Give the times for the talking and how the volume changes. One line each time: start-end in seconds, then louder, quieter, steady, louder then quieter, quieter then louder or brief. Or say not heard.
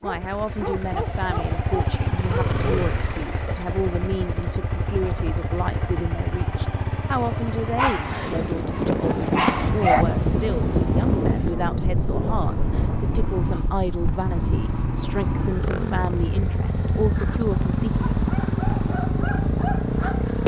0.0-18.1 steady.